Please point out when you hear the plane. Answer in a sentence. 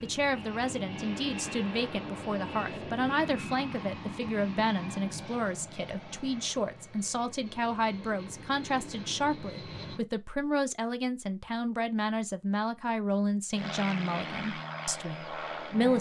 You can hear the plane from 0.0 to 10.1 s and from 13.5 to 15.9 s.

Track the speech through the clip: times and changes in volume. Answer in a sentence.
The speech can be heard from 0.0 to 15.9 s, at a steady volume.